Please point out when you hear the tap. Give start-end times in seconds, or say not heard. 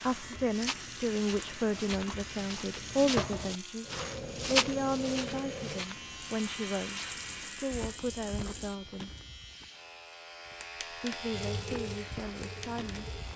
0.0-8.8, 11.3-13.3.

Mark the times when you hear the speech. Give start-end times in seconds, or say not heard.
0.0-9.1, 10.8-13.2.